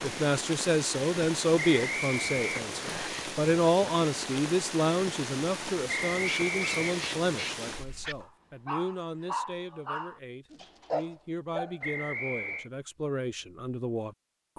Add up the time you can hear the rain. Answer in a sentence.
You can hear the rain for 8 seconds altogether.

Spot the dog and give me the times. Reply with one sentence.
You can hear the dog from 6.2 to 11.8 s.